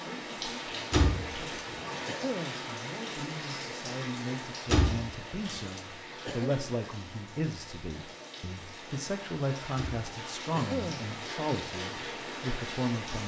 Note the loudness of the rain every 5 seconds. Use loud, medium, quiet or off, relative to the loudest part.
loud, medium, loud.